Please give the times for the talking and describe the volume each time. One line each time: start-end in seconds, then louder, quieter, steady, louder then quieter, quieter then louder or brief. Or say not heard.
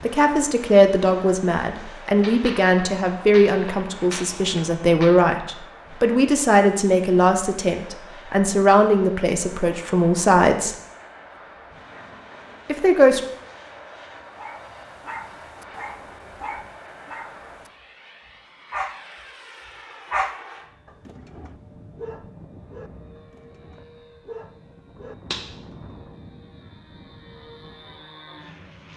0.0-10.8 steady
12.7-13.2 brief.